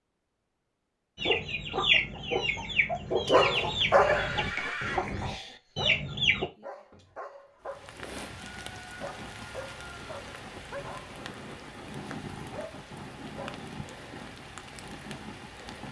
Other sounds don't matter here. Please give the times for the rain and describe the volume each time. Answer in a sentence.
You can hear the rain from 7.7 to 15.8 s, at a steady volume.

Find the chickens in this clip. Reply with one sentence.
You can hear the chickens from 1.1 to 6.5 s.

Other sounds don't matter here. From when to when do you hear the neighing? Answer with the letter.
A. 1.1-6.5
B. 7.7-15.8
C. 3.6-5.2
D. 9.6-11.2
C.